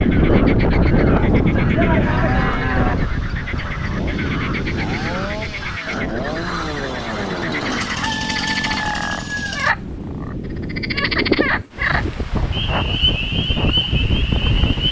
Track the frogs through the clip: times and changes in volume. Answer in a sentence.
You can hear the frogs from 0.0 to 14.8 s, getting louder.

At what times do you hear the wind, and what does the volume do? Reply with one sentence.
The wind can be heard from 0.0 to 14.8 s, getting quieter then louder.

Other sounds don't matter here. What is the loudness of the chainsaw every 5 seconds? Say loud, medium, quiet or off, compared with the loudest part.
medium, loud, off.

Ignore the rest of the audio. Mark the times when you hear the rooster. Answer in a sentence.
The rooster can be heard from 8.0 to 9.7 s.